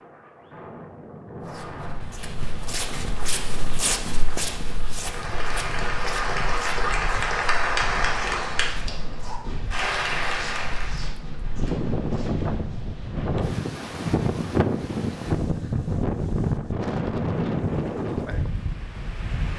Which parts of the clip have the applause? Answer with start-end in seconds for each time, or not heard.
4.9-11.1.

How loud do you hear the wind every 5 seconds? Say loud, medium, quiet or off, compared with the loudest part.
quiet, quiet, loud, loud.